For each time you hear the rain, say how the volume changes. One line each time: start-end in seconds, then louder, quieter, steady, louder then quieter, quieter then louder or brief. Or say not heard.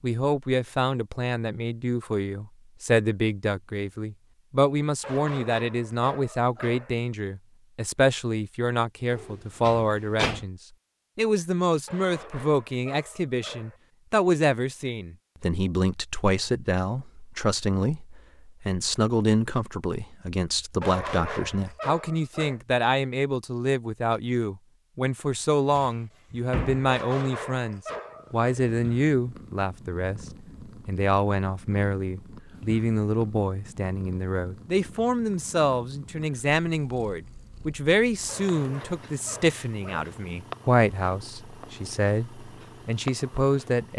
not heard.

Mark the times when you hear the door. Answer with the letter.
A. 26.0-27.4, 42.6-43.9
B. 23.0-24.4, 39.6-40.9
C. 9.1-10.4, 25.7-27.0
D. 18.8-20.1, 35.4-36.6
C.